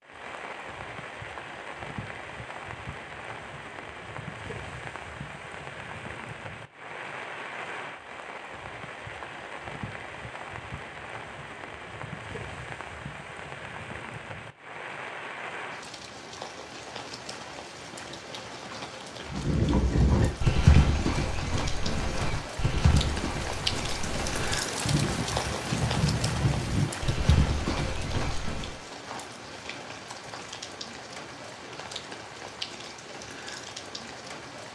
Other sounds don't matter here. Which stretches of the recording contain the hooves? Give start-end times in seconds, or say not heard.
19.3-28.8.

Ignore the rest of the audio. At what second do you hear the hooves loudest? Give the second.
21 s.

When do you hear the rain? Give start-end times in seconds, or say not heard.
0.0-34.6.